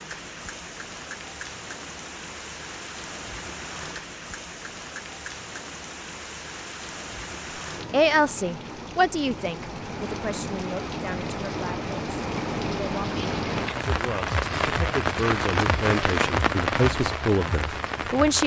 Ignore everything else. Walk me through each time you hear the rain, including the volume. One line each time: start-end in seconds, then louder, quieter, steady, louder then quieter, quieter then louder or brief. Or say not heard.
0.0-18.4 louder.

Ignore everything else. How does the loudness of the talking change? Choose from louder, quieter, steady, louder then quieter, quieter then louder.
quieter then louder.